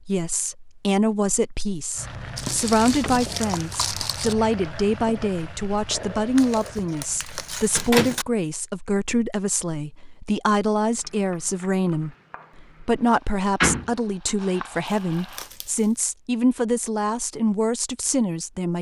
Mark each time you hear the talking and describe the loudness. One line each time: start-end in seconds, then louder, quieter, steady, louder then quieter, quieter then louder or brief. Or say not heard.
0.1-18.7 steady.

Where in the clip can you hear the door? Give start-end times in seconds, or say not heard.
2.8-3.3, 7.8-8.2, 13.6-14.3.